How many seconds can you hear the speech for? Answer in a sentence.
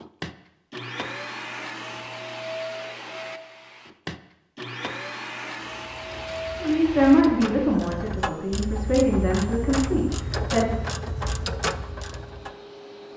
The speech can be heard for 4 seconds in total.